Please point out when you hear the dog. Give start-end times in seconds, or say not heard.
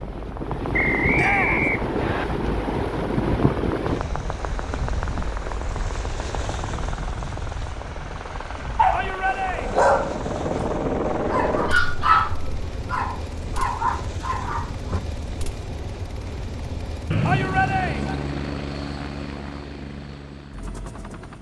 8.8-10.2, 11.2-15.0.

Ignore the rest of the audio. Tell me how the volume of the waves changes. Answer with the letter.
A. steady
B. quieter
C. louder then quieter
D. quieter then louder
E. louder
B.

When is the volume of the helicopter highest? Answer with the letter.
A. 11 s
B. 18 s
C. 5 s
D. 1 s
A.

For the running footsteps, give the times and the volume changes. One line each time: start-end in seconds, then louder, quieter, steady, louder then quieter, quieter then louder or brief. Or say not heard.
not heard.